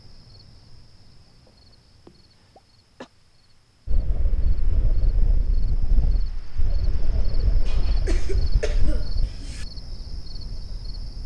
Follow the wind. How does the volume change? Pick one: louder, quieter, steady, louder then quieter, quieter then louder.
quieter.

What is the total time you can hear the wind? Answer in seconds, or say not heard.
7 s.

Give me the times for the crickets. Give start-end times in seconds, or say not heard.
0.0-11.2.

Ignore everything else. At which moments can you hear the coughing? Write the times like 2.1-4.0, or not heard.
2.0-3.1, 7.7-9.7.